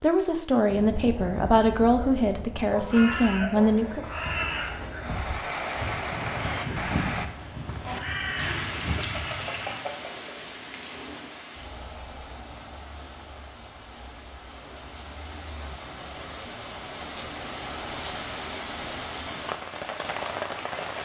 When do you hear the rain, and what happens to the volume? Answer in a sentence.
You can hear the rain from 5.0 to 21.0 s, getting quieter then louder.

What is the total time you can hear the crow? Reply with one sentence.
The crow can be heard for 8 seconds in total.